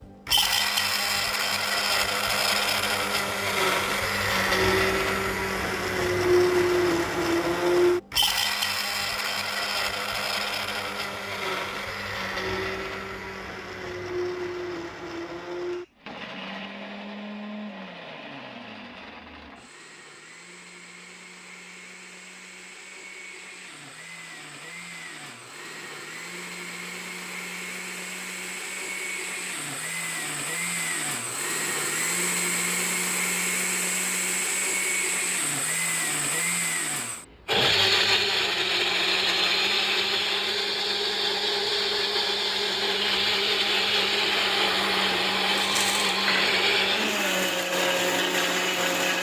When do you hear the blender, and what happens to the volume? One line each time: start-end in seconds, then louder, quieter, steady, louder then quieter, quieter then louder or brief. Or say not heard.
0.0-49.1 quieter then louder.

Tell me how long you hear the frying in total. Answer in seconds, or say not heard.
2 s.